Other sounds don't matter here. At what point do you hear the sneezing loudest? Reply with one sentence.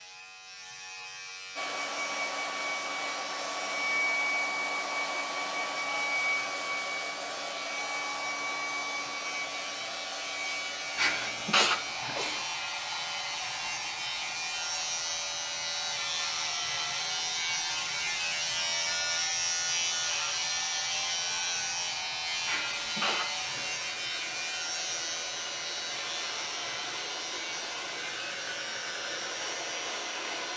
The volume of the sneezing peaks at 12 seconds.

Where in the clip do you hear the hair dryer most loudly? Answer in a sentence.
The loudest moment of the hair dryer is at 4 seconds.